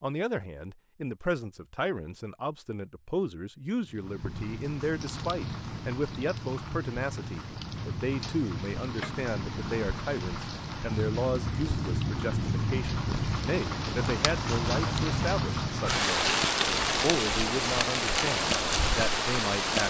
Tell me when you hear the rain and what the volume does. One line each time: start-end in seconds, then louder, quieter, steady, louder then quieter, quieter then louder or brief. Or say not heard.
3.8-19.8 louder.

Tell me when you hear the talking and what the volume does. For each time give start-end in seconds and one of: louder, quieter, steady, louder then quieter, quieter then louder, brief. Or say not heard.
0.0-16.4 steady
17.0-19.8 brief.